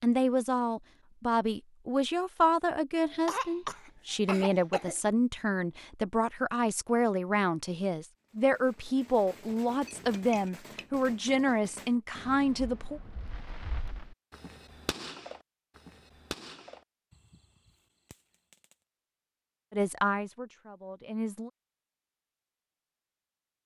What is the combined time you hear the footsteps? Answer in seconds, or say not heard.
not heard.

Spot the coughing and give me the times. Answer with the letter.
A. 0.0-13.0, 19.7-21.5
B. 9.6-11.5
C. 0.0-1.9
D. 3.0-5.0
D.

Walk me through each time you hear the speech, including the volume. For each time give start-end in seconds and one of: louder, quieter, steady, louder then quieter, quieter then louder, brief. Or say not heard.
0.0-13.0 steady
19.7-21.5 brief.